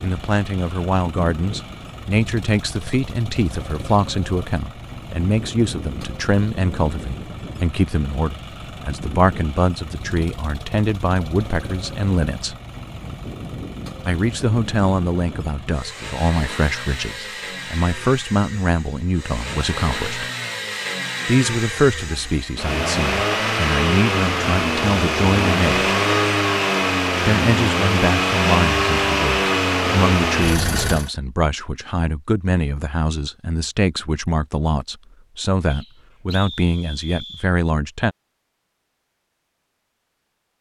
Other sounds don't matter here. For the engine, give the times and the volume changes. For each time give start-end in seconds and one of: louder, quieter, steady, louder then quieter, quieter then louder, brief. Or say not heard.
0.0-31.1 louder.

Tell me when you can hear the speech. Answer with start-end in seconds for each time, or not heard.
0.0-12.6, 14.1-20.2, 21.2-25.9, 27.2-38.1.